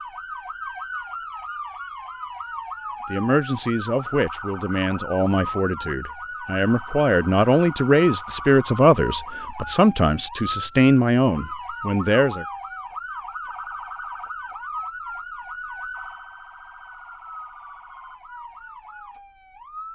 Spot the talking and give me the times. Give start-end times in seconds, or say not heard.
3.1-12.4.